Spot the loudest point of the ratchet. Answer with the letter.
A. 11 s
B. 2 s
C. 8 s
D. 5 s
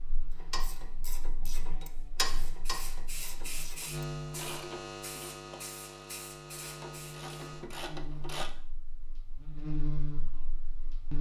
B.